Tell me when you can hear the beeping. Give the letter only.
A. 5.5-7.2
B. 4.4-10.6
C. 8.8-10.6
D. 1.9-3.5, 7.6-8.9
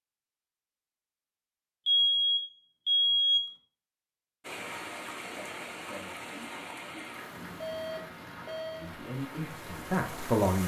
D.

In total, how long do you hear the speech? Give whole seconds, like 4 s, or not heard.
2 s.